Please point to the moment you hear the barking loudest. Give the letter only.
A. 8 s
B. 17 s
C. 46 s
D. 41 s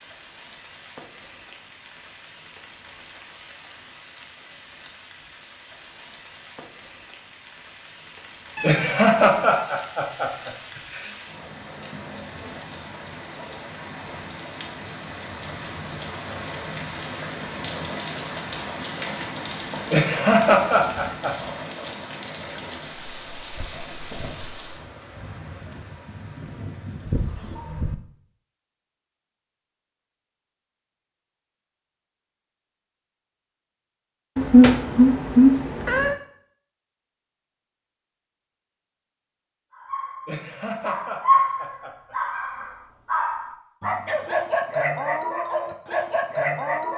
D.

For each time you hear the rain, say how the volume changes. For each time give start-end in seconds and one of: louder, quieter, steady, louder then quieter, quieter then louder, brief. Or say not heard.
0.0-27.8 louder then quieter.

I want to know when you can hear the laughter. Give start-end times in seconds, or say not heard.
8.6-11.1, 19.9-21.4, 40.2-42.1.